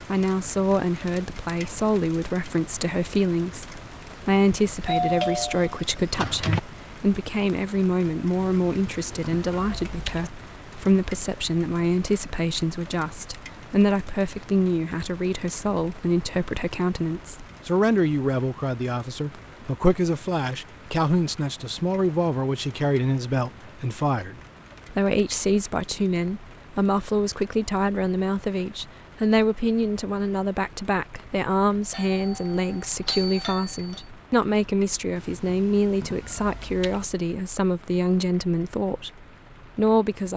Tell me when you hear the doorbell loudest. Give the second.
5 s.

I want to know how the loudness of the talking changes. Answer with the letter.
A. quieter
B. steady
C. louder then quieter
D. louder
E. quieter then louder
B.